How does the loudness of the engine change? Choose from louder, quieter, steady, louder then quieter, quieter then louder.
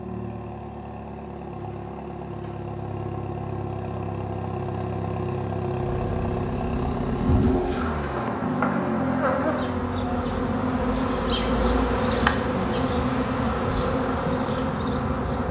louder then quieter.